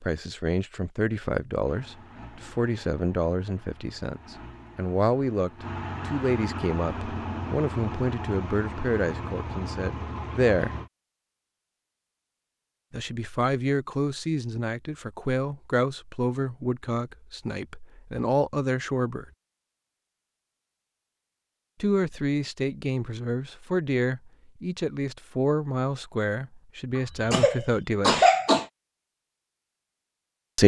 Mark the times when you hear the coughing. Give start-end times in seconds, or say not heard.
26.9-28.6.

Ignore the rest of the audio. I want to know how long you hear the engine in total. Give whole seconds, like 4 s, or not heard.
9 s.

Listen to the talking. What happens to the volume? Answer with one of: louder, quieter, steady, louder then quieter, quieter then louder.
steady.